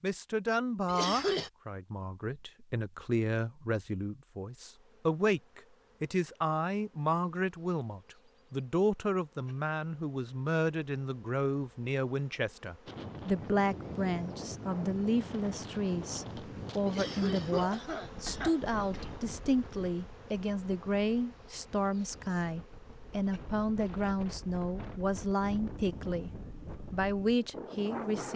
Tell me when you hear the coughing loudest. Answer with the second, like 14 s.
1 s.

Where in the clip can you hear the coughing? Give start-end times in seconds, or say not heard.
0.8-1.5, 16.9-19.2.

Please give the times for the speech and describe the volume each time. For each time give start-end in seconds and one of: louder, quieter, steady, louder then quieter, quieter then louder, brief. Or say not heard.
0.0-28.3 steady.